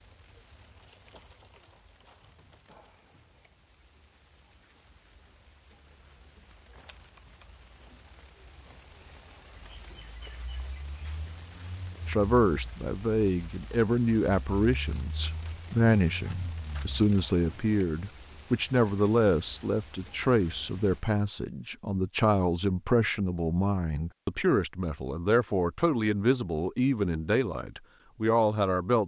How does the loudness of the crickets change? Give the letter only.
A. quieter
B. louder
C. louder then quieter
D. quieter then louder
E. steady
B.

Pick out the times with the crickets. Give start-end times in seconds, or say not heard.
0.0-21.1.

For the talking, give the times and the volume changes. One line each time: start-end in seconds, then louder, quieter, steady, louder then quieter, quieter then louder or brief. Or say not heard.
12.1-29.0 steady.